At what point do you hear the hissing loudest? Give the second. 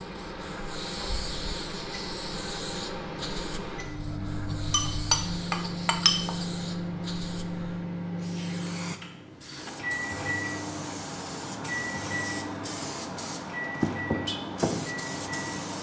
14 s.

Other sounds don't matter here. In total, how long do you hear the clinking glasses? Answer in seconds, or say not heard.
2 s.